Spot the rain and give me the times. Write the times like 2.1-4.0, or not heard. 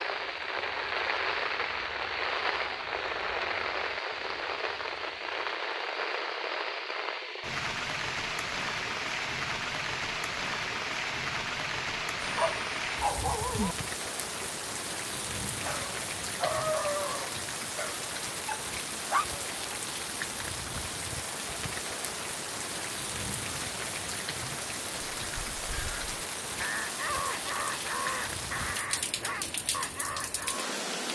0.0-31.1.